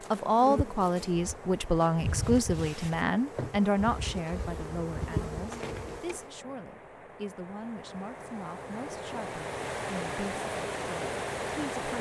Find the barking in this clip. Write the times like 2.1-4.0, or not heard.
not heard.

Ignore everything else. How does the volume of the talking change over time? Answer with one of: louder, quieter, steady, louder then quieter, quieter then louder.
quieter.